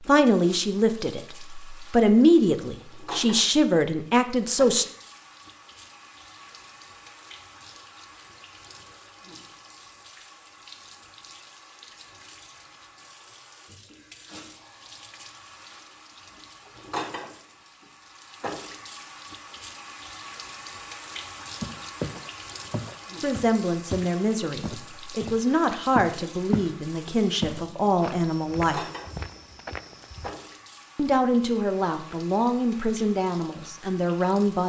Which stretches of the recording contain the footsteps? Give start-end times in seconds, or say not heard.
21.6-26.8, 27.4-30.3.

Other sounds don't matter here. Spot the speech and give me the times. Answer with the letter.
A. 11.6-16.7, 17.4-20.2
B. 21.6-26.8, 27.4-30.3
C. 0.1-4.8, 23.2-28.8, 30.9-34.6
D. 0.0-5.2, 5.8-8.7
C.